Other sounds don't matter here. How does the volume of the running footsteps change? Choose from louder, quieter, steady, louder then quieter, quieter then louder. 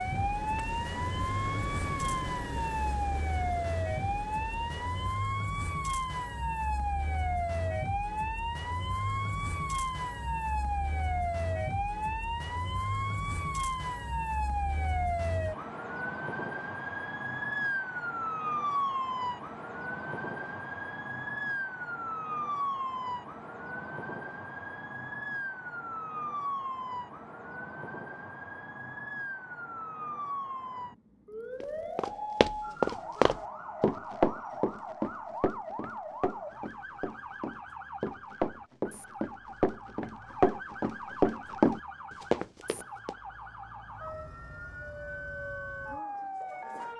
quieter then louder.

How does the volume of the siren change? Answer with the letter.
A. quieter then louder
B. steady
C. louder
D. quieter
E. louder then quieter
D.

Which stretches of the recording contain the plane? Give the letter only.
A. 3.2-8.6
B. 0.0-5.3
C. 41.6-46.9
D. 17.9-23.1
B.